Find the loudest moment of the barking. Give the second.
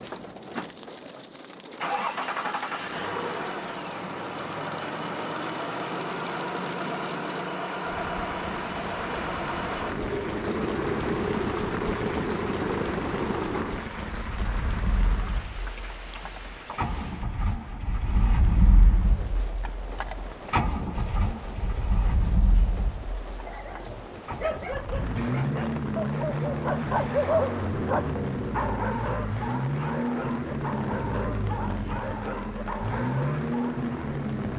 27 s.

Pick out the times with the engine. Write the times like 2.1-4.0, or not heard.
0.0-34.5.